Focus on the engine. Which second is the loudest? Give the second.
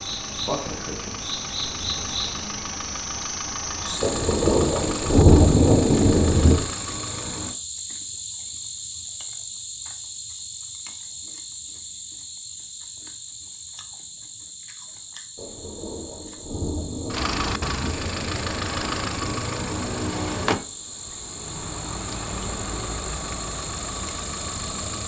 20 s.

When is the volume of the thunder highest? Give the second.
5 s.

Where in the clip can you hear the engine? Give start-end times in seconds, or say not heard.
0.0-7.5, 17.1-25.0.